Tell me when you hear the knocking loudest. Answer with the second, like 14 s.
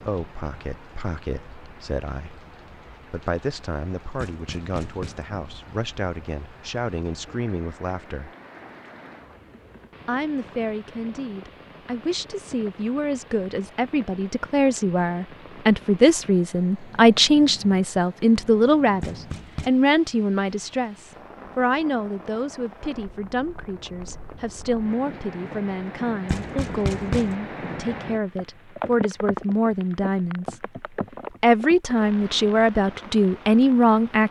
27 s.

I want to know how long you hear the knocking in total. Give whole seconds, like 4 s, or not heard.
3 s.